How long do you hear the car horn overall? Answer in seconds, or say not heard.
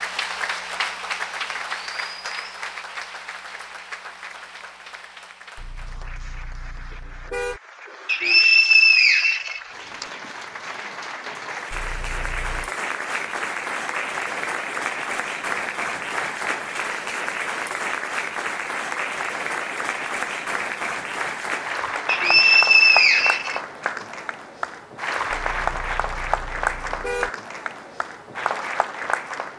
5 s.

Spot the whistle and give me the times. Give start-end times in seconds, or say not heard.
8.1-10.1, 22.1-23.6.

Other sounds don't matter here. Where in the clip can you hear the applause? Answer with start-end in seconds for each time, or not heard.
0.0-29.5.